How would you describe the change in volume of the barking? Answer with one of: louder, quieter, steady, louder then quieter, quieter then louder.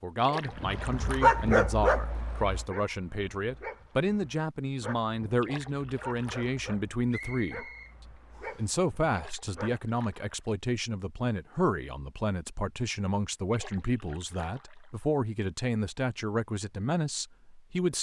quieter.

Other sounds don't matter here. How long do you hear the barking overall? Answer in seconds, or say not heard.
9 s.